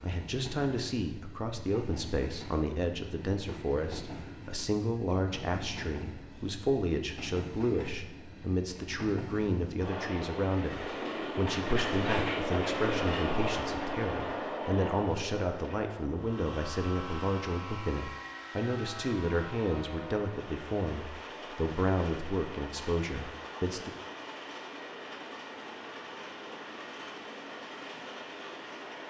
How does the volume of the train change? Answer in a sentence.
The loudness of the train goes up, then down.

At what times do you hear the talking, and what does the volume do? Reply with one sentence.
The talking can be heard from 0.0 to 23.9 s, at a steady volume.